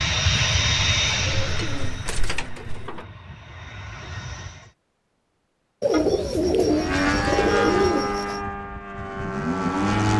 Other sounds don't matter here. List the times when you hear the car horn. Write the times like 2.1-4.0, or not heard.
5.9-7.9.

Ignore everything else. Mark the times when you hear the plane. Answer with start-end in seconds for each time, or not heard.
0.0-4.7, 6.6-10.1.